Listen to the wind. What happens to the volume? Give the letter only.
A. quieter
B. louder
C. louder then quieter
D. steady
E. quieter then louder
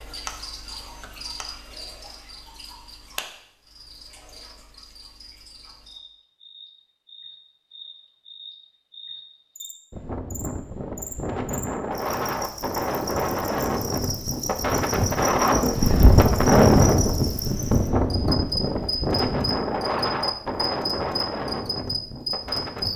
C.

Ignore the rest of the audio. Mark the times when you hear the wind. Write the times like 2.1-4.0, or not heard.
9.9-22.9.